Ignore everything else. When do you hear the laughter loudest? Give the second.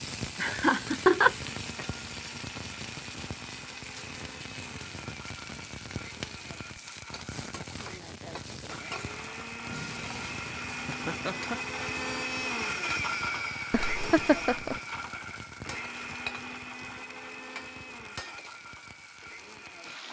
1 s.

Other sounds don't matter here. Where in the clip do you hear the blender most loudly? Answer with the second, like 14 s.
13 s.